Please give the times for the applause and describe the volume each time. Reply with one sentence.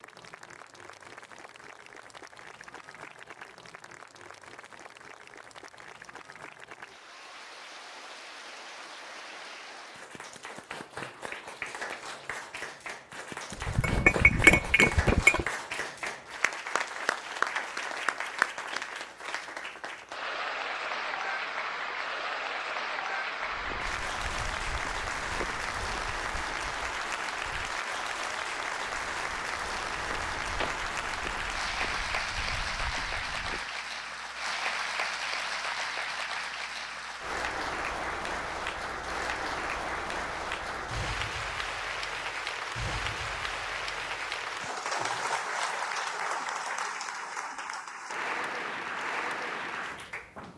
You can hear the applause from 0.0 to 50.5 s, getting louder.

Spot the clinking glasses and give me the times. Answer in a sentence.
You can hear the clinking glasses from 13.5 to 15.4 s.